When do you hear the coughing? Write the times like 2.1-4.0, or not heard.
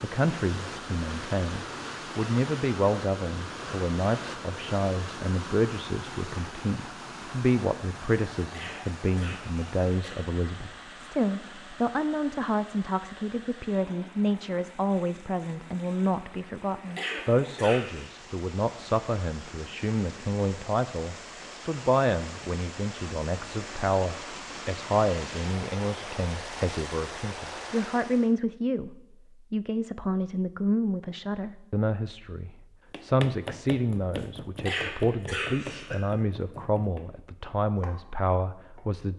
8.5-10.2, 16.9-18.1, 34.6-36.0.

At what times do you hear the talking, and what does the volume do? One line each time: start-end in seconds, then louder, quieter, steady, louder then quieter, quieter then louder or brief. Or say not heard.
0.0-39.1 steady.